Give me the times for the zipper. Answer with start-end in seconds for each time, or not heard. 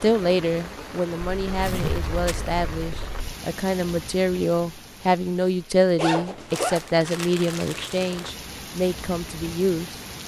1.4-3.4, 6.0-6.8.